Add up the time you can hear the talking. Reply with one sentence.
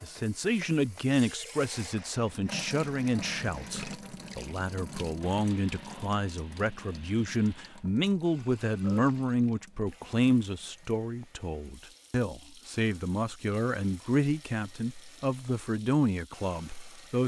You can hear the talking for 17 seconds altogether.